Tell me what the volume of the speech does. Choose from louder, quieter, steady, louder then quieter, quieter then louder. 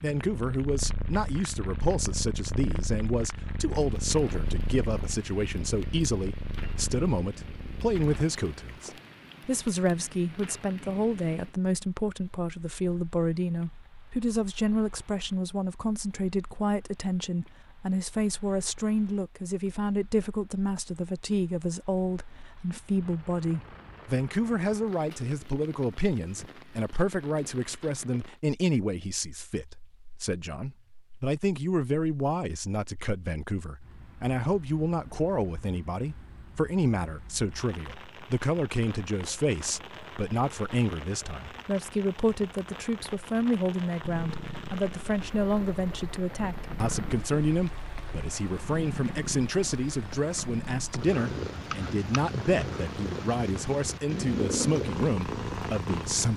steady.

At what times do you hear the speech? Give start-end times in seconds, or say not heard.
0.0-56.3.